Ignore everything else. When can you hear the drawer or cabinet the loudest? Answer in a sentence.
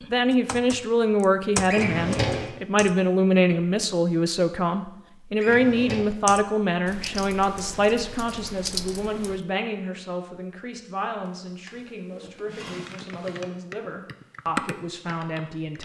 The loudest moment of the drawer or cabinet is at 2 seconds.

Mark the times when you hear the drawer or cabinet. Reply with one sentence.
The drawer or cabinet can be heard from 1.6 to 2.5 s, from 5.3 to 6.0 s and from 11.2 to 13.5 s.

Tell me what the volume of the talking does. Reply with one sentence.
The volume of the talking goes down.